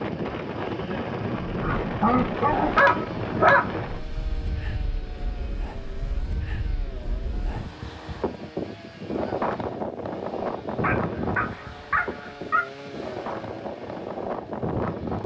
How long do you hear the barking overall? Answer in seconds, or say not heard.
4 s.